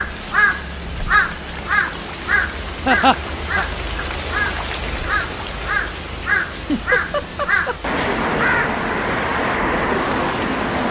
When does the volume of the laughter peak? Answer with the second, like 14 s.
3 s.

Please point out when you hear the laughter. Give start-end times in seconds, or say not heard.
2.9-3.6, 6.5-8.2.